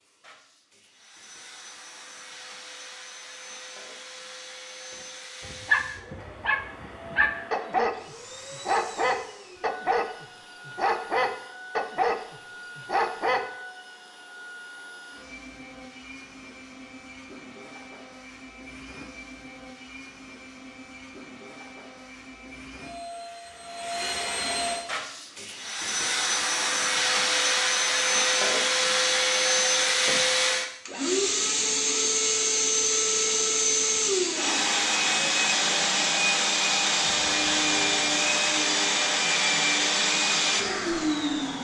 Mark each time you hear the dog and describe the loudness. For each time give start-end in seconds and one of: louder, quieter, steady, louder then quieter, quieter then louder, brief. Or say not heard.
5.5-13.4 steady.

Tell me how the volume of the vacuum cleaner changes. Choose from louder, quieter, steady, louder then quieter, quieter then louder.
louder.